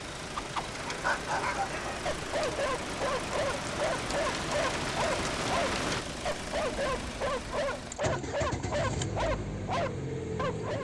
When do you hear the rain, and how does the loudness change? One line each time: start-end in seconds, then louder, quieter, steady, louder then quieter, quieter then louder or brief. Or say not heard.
0.0-6.0 louder.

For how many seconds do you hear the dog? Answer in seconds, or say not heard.
10 s.